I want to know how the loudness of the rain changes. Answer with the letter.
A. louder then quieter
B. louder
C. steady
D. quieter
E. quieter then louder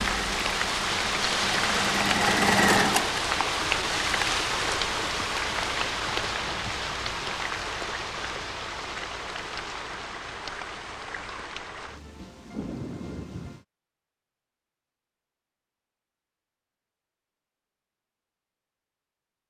D.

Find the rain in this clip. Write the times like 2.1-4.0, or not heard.
0.0-13.7.